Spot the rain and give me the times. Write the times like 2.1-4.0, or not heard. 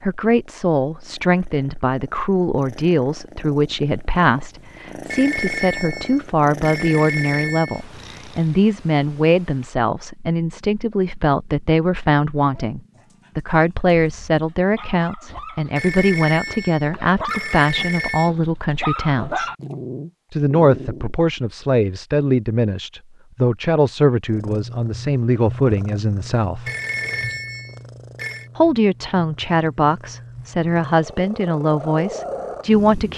not heard.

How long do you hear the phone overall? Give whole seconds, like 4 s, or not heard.
7 s.